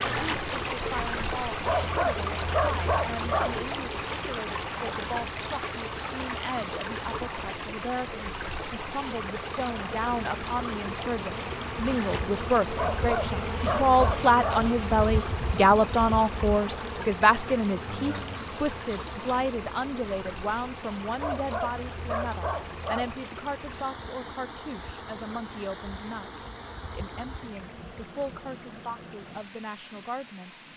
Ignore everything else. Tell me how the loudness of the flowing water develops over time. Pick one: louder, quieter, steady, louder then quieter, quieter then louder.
quieter.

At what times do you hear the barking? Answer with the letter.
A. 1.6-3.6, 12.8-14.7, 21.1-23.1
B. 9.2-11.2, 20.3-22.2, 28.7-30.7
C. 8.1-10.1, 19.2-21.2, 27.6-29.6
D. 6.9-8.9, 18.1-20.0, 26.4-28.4
A.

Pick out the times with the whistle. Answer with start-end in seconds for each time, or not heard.
not heard.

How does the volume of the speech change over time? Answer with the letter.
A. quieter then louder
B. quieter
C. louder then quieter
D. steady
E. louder
C.